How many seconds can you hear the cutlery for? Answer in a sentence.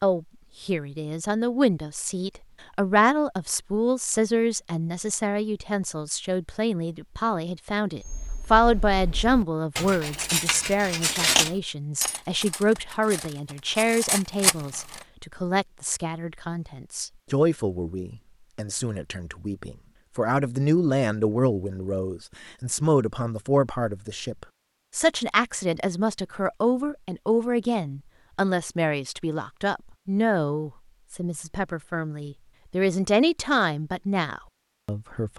The cutlery can be heard for 7 seconds in total.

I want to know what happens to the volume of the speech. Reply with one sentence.
The volume of the speech stays about the same.